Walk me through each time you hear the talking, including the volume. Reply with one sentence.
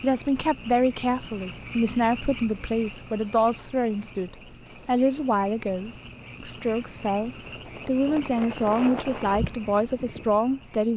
You can hear the talking from 0.0 to 10.9 s, at a steady volume.